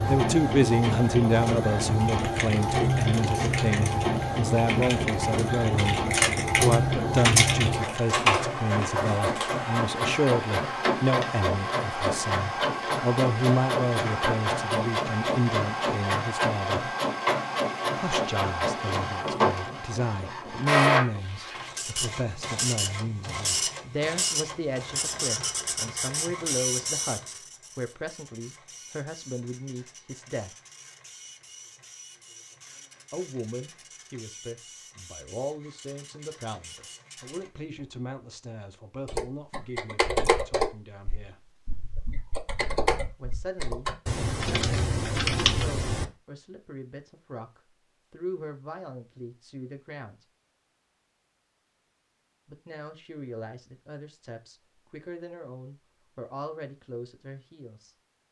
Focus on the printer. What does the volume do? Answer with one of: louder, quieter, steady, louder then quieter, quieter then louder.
quieter.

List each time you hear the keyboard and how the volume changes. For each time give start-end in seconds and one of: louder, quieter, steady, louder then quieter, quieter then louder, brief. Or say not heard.
1.4-8.4 louder
39.0-46.0 quieter then louder.